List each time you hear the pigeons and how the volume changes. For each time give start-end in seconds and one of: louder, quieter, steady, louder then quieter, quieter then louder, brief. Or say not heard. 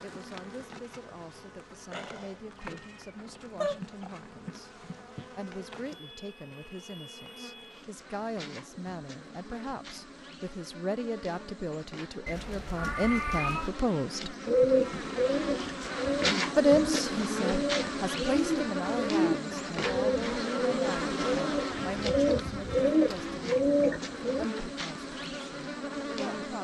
14.4-24.4 louder.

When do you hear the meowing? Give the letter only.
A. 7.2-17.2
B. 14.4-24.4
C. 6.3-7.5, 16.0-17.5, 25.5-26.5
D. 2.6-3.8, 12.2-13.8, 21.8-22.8
D.